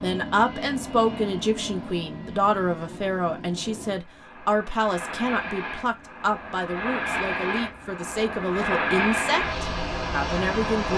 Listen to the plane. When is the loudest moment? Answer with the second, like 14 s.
9 s.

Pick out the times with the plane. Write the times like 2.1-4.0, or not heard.
0.0-10.9.